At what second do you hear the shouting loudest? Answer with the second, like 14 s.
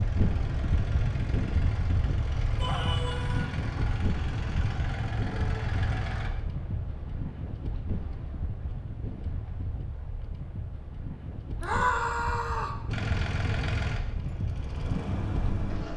12 s.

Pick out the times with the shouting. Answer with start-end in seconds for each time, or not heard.
2.6-3.5, 5.3-5.7, 11.6-12.8.